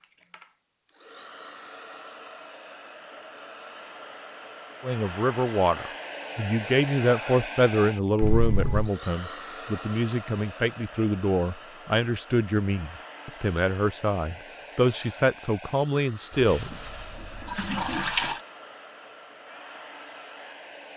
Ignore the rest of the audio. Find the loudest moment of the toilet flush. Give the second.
18 s.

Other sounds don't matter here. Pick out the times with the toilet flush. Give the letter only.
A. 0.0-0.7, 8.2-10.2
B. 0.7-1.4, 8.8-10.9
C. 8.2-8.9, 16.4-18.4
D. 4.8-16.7
C.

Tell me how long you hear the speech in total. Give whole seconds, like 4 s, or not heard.
12 s.